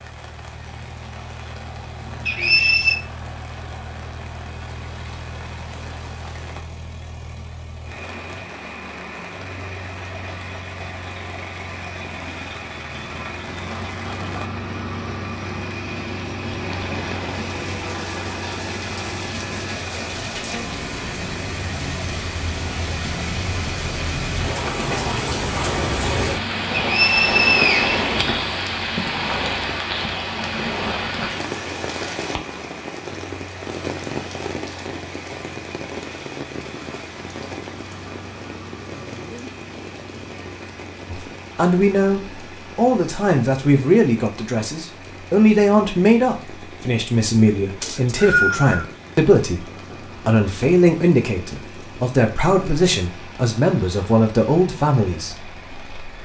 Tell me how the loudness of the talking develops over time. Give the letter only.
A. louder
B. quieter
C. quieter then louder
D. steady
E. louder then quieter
D.